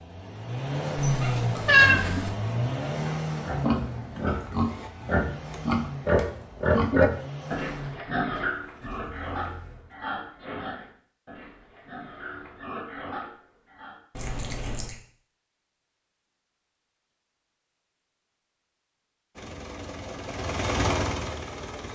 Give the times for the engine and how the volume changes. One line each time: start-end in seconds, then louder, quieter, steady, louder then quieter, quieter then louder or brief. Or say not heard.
0.0-10.1 quieter
19.4-21.8 brief.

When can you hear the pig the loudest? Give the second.
7 s.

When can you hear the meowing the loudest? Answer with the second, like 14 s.
2 s.